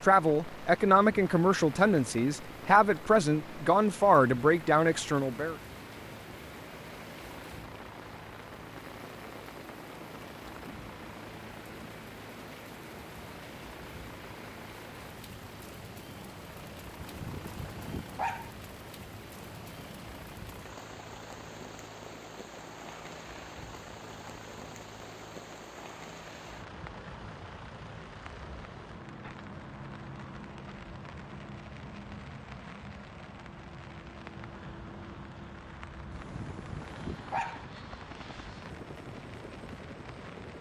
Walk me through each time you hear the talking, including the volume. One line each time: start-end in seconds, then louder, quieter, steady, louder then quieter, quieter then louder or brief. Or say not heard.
0.0-5.5 steady.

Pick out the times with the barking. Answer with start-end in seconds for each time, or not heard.
16.9-18.5, 36.1-37.6.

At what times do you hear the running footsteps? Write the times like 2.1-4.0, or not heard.
not heard.